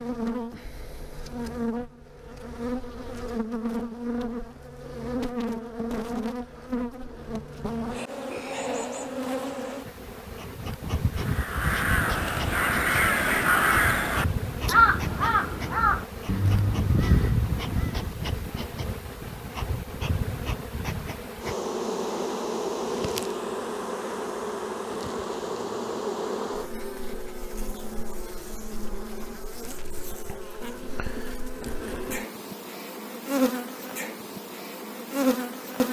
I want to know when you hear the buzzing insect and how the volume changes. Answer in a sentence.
The buzzing insect can be heard from 0.0 to 35.8 s, at a steady volume.